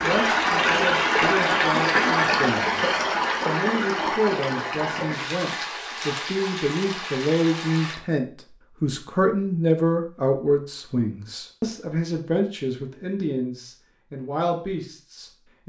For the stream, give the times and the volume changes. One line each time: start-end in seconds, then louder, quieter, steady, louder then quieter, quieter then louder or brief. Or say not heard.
0.0-8.0 quieter.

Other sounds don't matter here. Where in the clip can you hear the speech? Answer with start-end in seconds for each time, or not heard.
0.0-15.6.